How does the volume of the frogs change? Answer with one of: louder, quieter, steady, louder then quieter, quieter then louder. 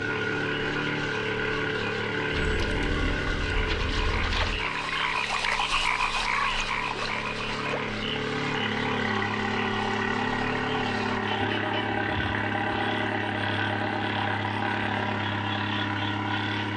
louder then quieter.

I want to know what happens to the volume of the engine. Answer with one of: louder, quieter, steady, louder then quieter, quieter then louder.
quieter then louder.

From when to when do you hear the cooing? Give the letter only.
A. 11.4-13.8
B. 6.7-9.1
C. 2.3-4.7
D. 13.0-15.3
C.